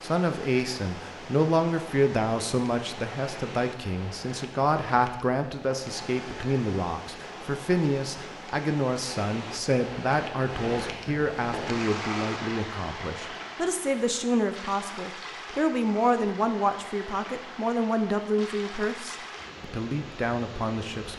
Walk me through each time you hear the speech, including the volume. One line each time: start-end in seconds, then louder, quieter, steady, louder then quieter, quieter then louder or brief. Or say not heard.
0.0-21.1 steady.